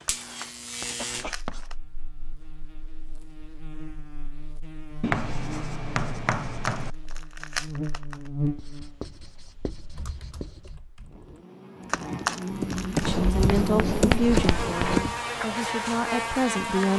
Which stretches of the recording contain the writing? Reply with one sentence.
You can hear the writing from 0.8 to 1.7 s, from 5.0 to 6.9 s, from 8.6 to 10.8 s and from 13.0 to 15.0 s.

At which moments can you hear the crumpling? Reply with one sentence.
The crumpling can be heard from 0.1 to 1.8 s, from 6.2 to 8.3 s and from 11.9 to 13.1 s.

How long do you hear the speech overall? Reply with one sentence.
You can hear the speech for 4 seconds altogether.